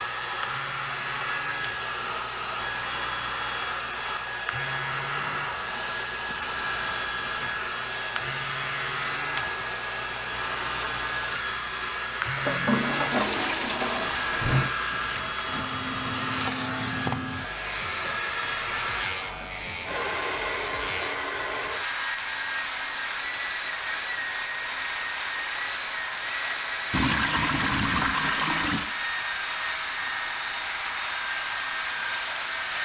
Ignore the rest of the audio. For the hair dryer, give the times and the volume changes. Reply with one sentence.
You can hear the hair dryer from 0.0 to 32.8 s, at a steady volume.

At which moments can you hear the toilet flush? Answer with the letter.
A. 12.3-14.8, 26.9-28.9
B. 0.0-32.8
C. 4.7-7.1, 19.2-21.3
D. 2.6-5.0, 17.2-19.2
A.